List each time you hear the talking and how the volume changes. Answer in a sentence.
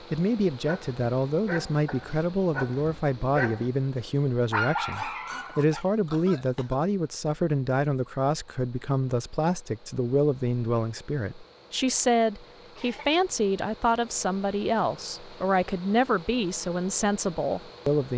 The talking can be heard from 0.0 to 18.1 s, at a steady volume.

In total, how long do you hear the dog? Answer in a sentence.
The dog can be heard for 5 seconds in total.